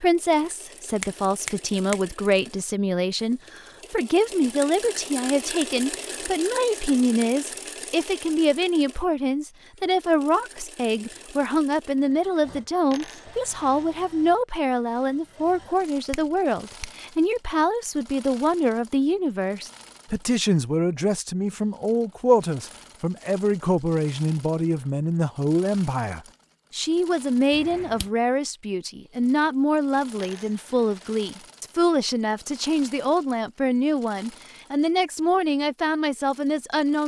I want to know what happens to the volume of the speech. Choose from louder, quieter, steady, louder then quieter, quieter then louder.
steady.